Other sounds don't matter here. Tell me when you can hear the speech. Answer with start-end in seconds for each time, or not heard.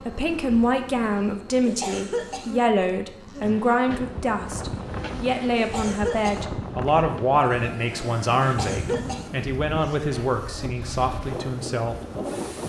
0.1-11.9.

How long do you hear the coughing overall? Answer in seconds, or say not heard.
3 s.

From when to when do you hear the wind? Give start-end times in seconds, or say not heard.
3.9-12.6.